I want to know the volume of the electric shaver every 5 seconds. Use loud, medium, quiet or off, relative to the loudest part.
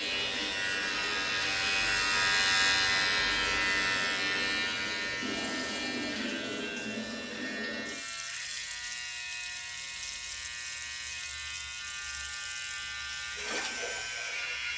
loud, medium, medium.